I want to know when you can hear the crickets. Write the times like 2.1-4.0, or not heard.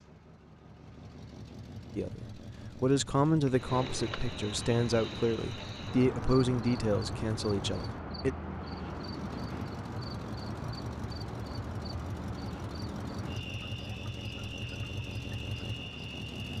3.5-16.5.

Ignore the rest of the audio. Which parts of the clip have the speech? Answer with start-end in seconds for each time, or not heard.
1.9-8.3.